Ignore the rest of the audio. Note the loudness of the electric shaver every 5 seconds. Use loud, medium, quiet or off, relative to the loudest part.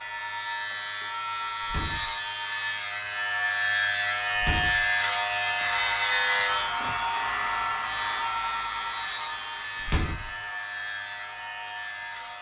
loud, loud, medium.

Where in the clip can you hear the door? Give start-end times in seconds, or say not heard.
1.6-2.1, 4.3-5.0, 9.8-10.4.